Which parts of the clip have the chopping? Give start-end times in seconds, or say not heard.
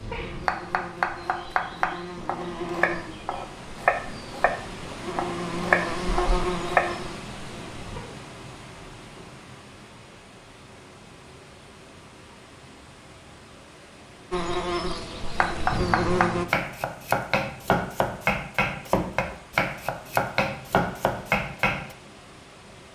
0.5-7.0, 15.4-21.9.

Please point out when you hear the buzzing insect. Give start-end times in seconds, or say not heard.
0.0-8.0, 14.3-16.4.